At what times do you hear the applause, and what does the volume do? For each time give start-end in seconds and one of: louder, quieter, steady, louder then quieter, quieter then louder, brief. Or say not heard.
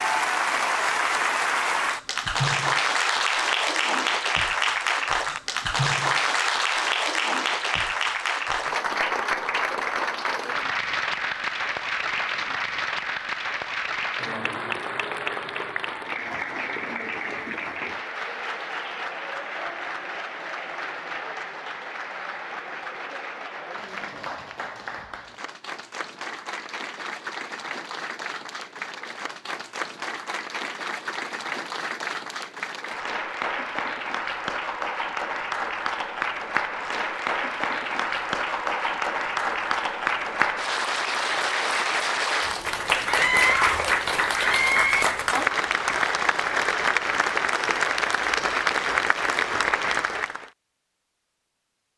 0.0-50.5 quieter then louder.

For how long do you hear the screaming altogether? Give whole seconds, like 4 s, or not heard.
2 s.